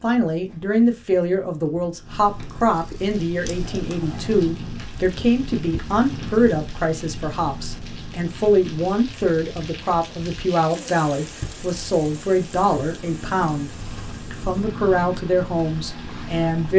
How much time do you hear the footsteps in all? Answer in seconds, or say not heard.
not heard.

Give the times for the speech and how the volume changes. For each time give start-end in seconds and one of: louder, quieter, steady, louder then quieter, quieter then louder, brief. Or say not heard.
0.0-16.7 steady.